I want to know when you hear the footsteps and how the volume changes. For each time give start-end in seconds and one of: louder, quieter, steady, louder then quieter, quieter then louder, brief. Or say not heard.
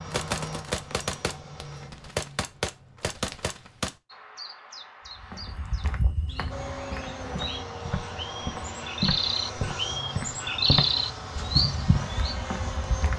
5.2-13.1 louder then quieter.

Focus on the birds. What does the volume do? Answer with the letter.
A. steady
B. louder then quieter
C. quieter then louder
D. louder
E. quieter
D.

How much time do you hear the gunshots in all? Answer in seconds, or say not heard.
4 s.